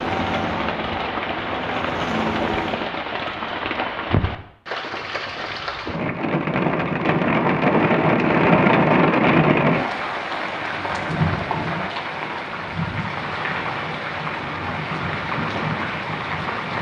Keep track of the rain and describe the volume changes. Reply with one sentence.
The volume of the rain goes up, then down.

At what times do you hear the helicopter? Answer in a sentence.
You can hear the helicopter from 0.0 to 2.9 s.